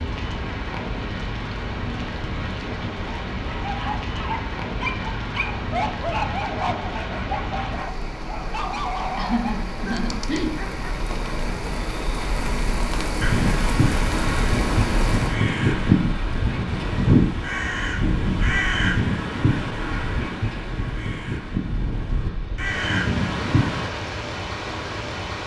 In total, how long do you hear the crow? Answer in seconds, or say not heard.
11 s.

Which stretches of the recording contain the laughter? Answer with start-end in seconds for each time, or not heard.
9.2-10.7.